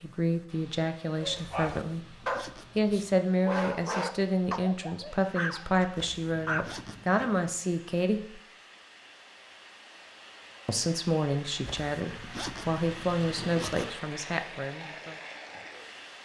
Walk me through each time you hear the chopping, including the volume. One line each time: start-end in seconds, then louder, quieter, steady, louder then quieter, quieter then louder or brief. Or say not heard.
not heard.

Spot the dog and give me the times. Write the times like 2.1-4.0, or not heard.
1.1-7.2.